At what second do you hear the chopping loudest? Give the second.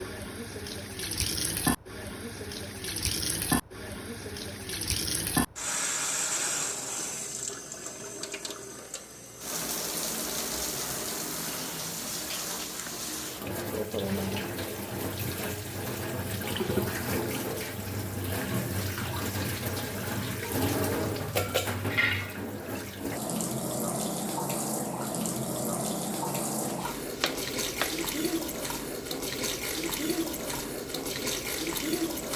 28 s.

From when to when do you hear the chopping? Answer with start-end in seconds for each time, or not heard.
26.2-28.1.